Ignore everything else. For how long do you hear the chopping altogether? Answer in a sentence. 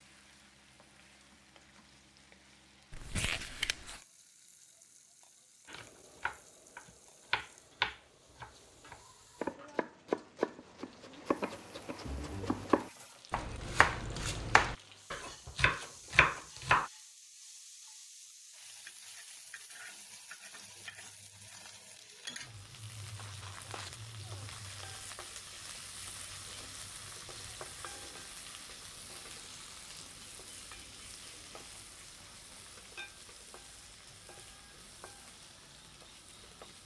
You can hear the chopping for 11 seconds altogether.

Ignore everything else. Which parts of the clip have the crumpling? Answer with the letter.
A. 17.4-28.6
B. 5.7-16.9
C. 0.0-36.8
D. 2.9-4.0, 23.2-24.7
D.